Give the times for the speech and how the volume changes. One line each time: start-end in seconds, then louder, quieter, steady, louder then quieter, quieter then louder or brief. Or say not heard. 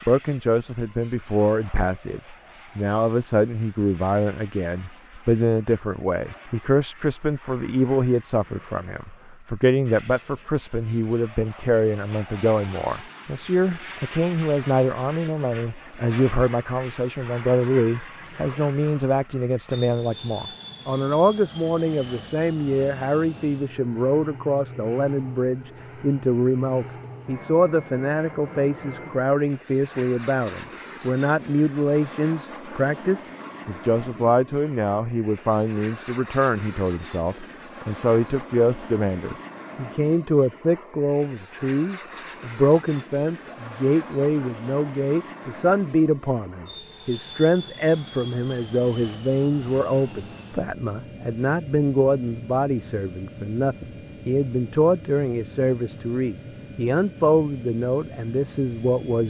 0.1-59.2 steady.